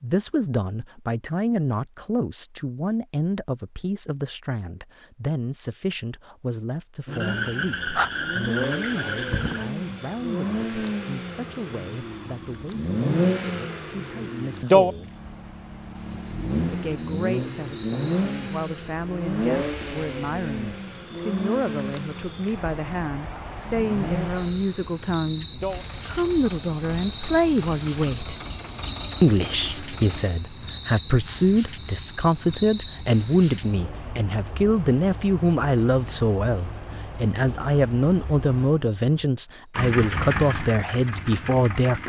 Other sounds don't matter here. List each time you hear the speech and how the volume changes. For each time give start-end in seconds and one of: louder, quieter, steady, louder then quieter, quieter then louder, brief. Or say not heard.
0.0-15.1 quieter
16.7-28.4 louder
29.2-42.0 steady.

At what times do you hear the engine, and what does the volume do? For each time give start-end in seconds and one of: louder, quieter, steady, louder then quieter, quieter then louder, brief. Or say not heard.
7.0-30.3 louder then quieter
39.8-42.0 brief.